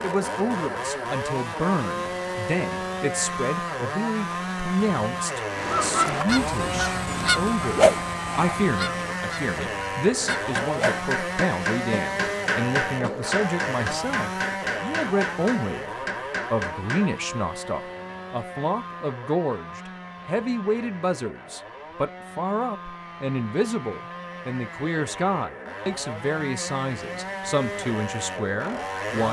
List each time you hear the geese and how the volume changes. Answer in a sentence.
The geese can be heard from 5.5 to 11.1 s, getting quieter.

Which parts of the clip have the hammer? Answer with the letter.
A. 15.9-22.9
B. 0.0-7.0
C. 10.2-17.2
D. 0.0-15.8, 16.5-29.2
C.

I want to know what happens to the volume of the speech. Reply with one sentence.
The loudness of the speech stays about the same.